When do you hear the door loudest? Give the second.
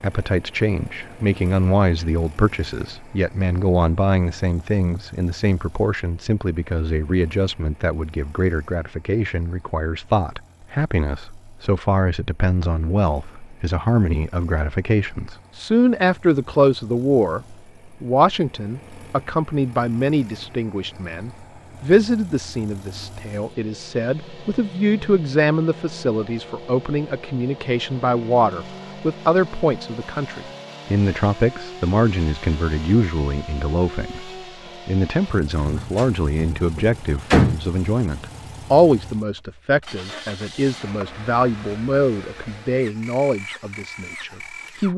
37 s.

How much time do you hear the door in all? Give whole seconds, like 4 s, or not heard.
2 s.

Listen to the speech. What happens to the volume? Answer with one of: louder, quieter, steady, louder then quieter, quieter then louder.
steady.